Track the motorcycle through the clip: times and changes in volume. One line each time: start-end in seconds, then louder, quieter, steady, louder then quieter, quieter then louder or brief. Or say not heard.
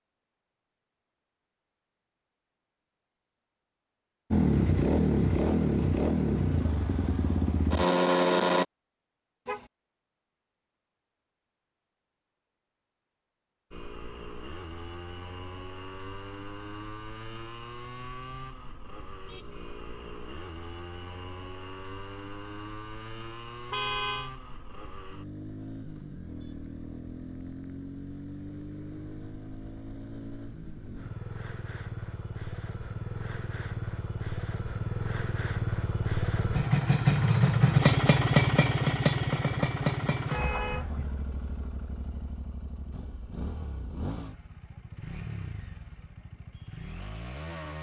4.3-8.7 quieter then louder
13.7-47.7 louder then quieter.